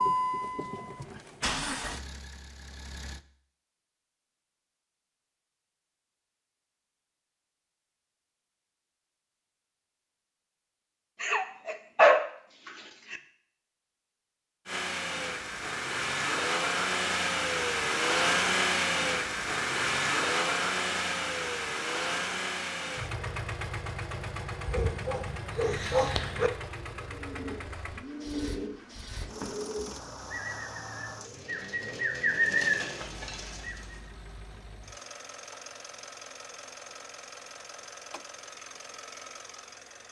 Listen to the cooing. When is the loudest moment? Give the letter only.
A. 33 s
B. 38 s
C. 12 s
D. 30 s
A.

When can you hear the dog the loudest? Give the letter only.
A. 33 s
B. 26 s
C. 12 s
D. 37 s
C.